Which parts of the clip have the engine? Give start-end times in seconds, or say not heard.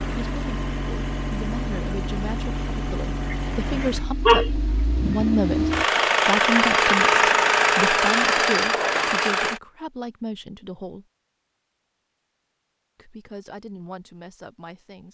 0.0-9.6.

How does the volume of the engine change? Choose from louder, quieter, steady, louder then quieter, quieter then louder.
louder.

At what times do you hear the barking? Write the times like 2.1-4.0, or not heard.
3.3-5.2.